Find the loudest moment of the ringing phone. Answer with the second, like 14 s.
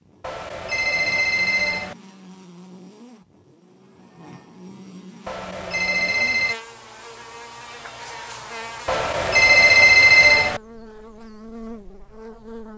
10 s.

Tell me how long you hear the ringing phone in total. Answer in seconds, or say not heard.
5 s.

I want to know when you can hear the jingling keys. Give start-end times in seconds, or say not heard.
not heard.